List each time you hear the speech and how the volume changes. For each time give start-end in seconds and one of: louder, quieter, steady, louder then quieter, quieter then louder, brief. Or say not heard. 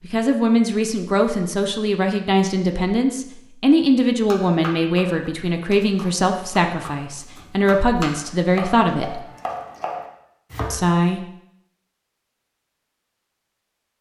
0.0-9.2 steady
10.7-11.2 brief.